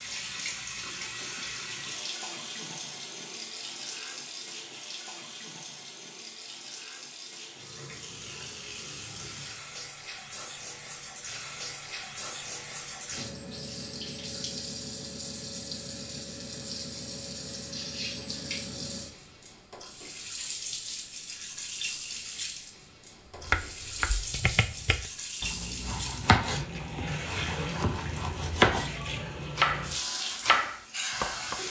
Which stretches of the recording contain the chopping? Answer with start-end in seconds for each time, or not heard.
23.4-28.9, 29.6-31.6.